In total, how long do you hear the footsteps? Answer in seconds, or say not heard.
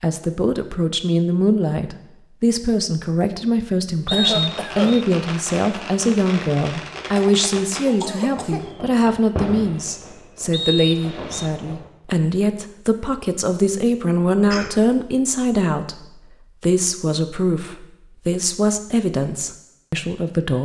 not heard.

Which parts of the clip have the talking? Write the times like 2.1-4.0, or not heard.
0.0-20.6.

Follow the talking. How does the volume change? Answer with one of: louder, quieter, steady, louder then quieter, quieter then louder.
steady.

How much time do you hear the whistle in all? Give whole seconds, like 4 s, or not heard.
2 s.